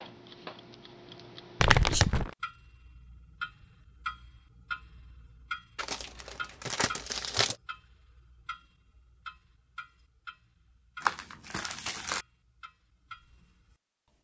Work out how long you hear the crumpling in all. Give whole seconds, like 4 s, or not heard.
4 s.